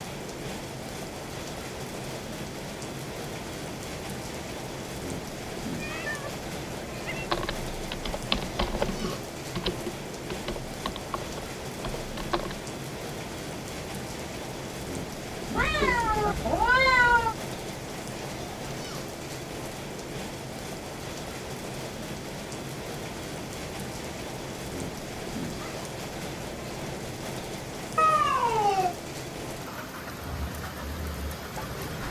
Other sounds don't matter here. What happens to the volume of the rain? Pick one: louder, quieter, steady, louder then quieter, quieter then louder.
steady.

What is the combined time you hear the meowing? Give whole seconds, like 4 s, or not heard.
4 s.